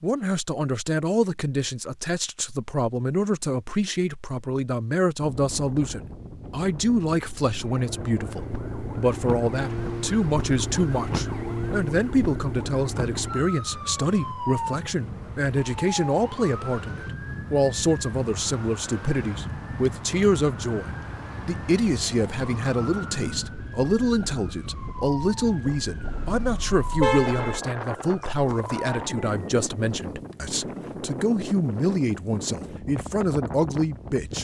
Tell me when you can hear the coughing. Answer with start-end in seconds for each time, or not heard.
not heard.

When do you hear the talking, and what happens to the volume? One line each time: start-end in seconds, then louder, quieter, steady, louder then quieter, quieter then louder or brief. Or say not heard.
0.0-34.3 steady.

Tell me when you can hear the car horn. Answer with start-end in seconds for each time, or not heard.
26.0-27.6.